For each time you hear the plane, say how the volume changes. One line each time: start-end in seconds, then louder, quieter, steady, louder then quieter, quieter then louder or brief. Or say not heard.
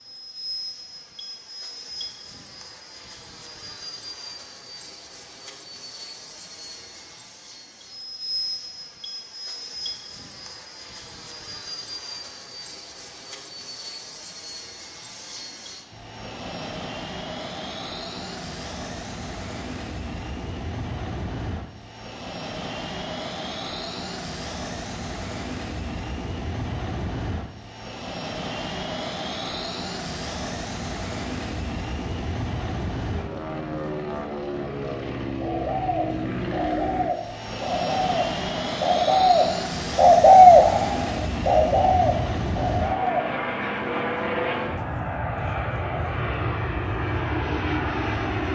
0.0-48.5 louder.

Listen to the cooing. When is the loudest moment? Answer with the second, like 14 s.
40 s.